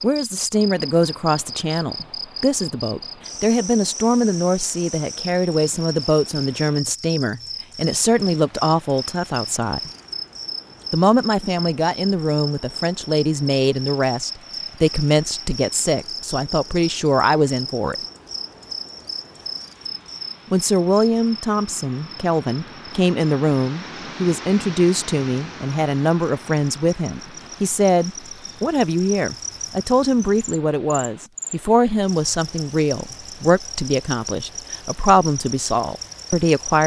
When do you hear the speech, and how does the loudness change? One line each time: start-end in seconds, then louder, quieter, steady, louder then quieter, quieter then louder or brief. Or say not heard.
0.0-9.9 steady
10.9-17.9 steady
20.5-36.8 steady.